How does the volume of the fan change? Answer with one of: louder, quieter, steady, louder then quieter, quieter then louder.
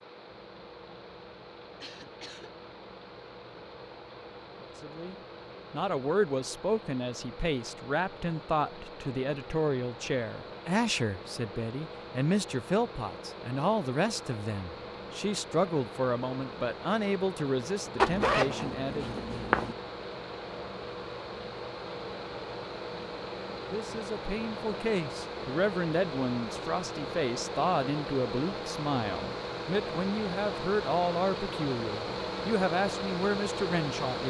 louder.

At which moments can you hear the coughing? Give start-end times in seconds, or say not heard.
1.8-2.5.